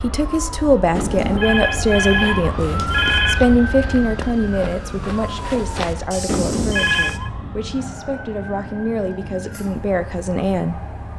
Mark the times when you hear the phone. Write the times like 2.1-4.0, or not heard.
0.9-3.4, 6.2-7.3.